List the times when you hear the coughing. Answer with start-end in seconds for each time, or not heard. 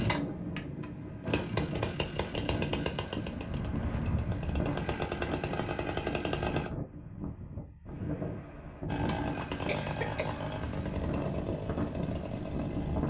9.7-10.4.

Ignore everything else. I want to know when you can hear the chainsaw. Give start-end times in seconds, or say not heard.
0.0-6.7, 8.8-13.0.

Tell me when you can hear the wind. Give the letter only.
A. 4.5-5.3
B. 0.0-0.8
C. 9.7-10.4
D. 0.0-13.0
D.